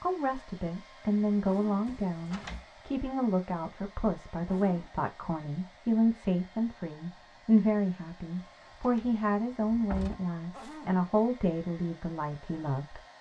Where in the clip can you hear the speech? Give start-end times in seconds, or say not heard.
0.0-13.0.